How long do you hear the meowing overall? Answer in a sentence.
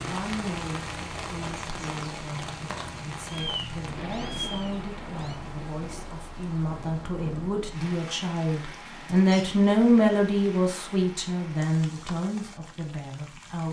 You can hear the meowing for 2 seconds altogether.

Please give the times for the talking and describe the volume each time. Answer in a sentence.
The talking can be heard from 0.0 to 13.6 s, getting louder then quieter.